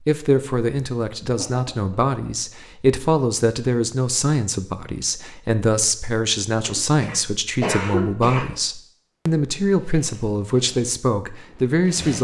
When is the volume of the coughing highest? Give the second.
8 s.